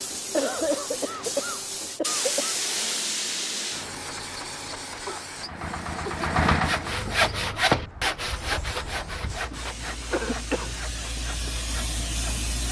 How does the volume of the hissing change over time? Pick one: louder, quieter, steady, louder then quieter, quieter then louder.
quieter then louder.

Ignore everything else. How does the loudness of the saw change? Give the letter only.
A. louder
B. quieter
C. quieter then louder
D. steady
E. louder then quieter
B.